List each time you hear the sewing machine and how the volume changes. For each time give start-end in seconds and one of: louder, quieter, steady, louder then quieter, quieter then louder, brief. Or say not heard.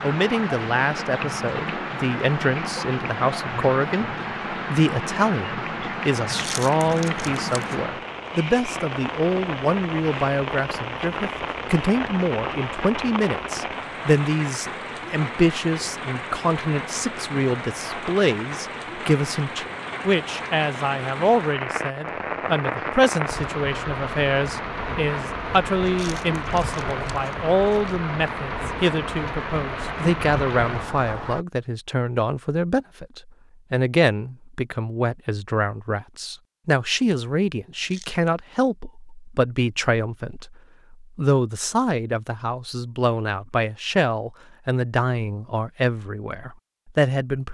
not heard.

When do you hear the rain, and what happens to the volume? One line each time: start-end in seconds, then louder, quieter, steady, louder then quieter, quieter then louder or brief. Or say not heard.
0.0-31.4 steady.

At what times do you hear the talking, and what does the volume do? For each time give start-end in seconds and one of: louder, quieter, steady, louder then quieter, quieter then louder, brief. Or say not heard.
0.0-47.5 steady.